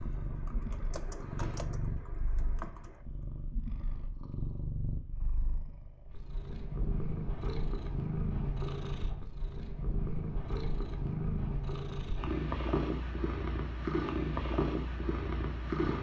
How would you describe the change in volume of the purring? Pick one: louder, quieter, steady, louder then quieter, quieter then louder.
louder.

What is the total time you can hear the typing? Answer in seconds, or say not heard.
3 s.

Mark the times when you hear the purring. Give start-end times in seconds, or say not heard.
0.0-15.9.